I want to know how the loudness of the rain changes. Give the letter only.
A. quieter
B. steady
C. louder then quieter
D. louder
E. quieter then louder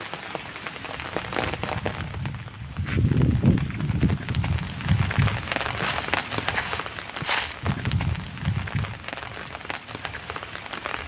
C.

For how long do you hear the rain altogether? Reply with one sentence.
You can hear the rain for 11 seconds altogether.